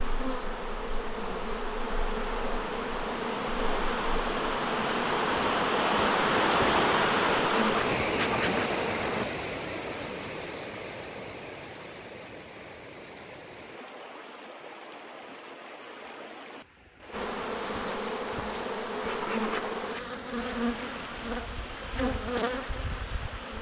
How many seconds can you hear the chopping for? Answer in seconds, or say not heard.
not heard.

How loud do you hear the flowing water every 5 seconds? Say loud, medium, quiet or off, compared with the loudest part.
medium, loud, quiet, quiet, quiet.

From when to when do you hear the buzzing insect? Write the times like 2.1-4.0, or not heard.
0.0-9.2, 17.1-23.5.